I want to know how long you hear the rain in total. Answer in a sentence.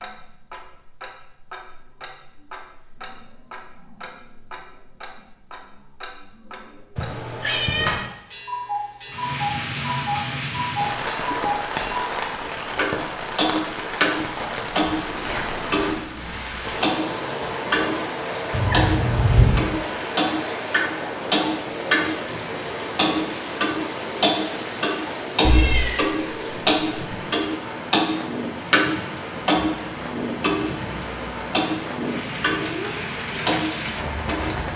You can hear the rain for 26 seconds altogether.